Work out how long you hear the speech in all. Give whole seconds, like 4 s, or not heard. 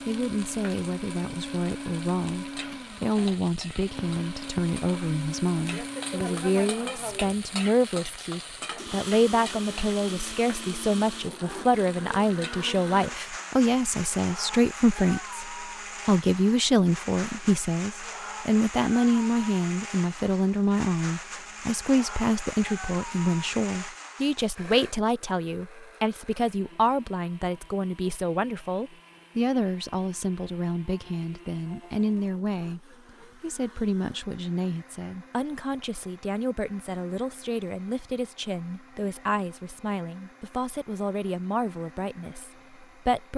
43 s.